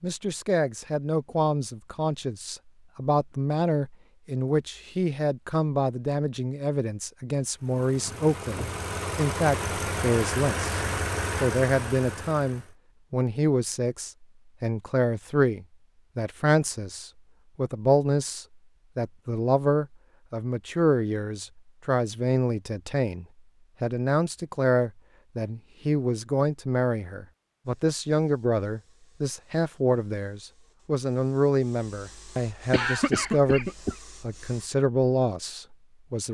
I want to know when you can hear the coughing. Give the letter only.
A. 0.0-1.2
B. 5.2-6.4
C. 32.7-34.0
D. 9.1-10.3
C.